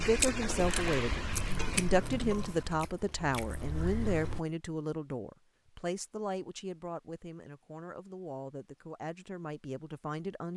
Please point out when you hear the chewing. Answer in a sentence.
The chewing can be heard from 0.0 to 4.5 s.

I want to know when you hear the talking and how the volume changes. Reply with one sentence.
The talking can be heard from 0.0 to 10.5 s, getting quieter.